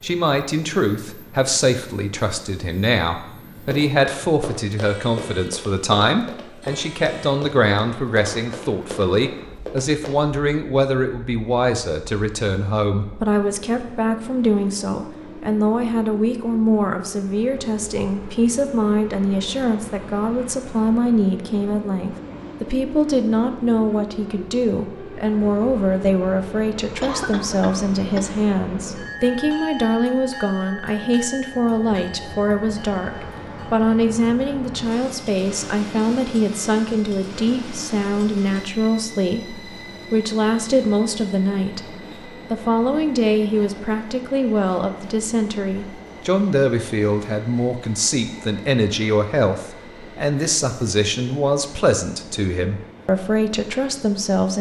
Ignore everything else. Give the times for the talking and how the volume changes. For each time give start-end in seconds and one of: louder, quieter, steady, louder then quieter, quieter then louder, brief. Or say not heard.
0.0-54.5 steady.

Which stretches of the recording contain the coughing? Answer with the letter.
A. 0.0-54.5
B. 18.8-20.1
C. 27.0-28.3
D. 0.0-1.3
C.